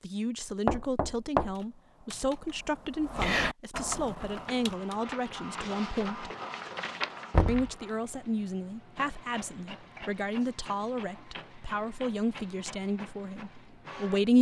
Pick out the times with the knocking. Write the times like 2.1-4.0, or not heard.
0.7-1.6, 7.3-7.7.